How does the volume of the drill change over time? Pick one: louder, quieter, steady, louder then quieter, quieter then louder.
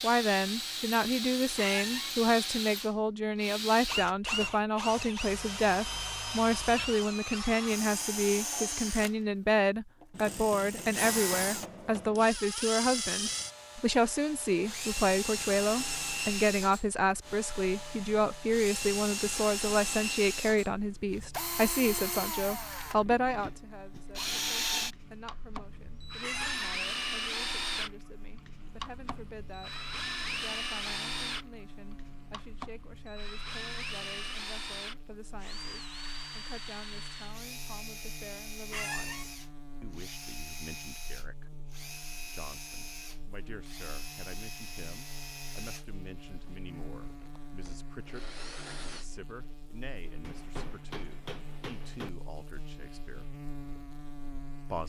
quieter.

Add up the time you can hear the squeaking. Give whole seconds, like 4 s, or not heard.
2 s.